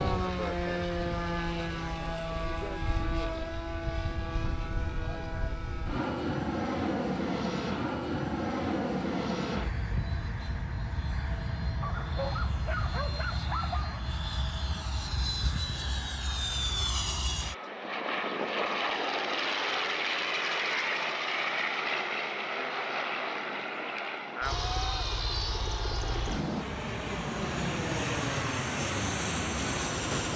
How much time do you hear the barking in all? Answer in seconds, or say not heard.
2 s.